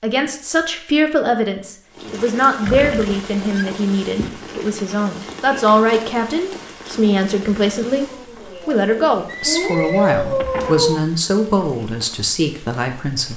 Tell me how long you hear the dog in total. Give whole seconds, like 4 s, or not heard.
3 s.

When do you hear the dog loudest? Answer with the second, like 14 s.
10 s.